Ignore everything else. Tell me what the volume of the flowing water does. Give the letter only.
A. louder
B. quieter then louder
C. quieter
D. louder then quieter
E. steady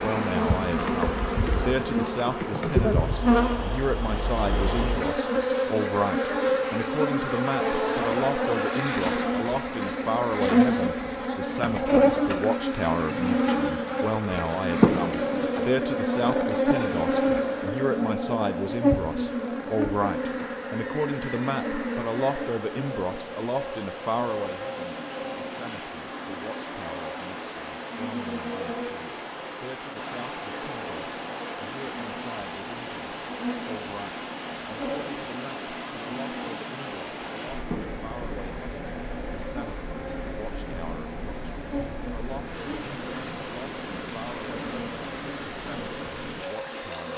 A.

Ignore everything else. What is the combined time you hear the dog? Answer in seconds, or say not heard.
not heard.